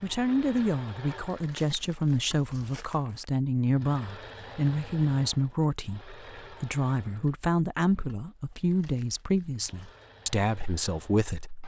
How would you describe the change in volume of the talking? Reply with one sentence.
The loudness of the talking stays about the same.